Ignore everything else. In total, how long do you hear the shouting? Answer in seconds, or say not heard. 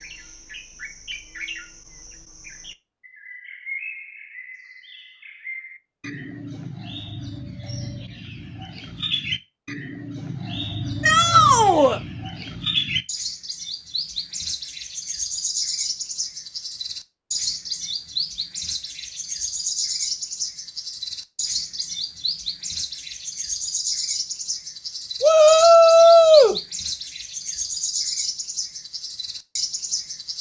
2 s.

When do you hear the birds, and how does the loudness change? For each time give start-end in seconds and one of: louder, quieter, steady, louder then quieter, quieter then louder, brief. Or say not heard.
0.0-30.3 louder.